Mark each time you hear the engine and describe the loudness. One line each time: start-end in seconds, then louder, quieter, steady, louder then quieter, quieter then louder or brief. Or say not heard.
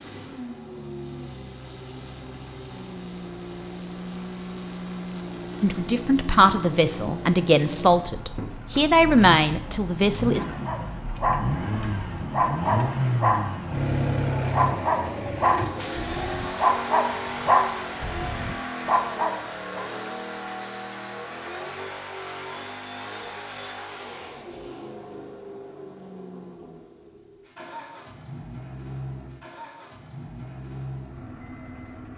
0.0-32.1 louder then quieter.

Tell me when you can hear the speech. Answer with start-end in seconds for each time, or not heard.
5.6-10.4.